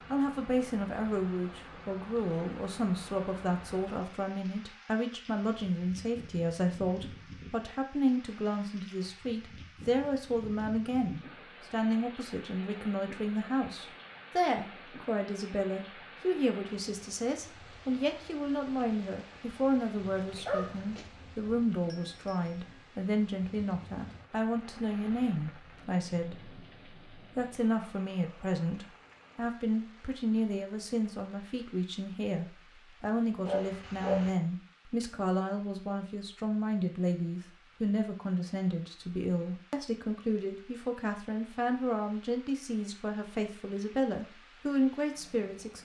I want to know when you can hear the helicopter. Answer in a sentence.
The helicopter can't be heard in this clip.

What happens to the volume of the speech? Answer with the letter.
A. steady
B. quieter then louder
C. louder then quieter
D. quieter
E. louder
A.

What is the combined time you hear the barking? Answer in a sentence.
The barking can be heard for 2 seconds in total.